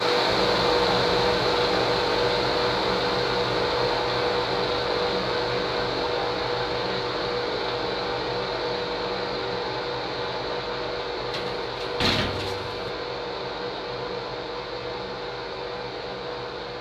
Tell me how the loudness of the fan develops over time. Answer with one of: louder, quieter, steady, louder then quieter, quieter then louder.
quieter.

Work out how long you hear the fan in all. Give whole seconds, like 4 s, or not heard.
17 s.